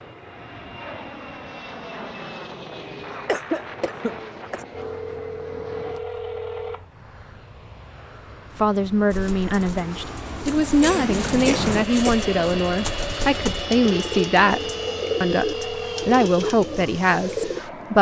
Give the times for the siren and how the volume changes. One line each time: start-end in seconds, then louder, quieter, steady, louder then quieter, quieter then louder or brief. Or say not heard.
not heard.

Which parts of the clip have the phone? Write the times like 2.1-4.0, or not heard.
4.7-6.9, 14.5-16.2.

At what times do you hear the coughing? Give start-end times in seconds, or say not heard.
3.2-4.7, 10.8-12.2.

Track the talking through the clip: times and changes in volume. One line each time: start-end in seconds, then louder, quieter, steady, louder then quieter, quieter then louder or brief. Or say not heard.
8.6-17.9 steady.